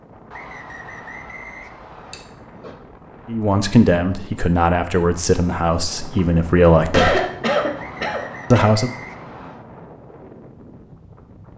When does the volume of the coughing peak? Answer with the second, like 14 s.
7 s.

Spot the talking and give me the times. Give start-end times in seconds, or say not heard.
3.2-7.2, 8.5-8.9.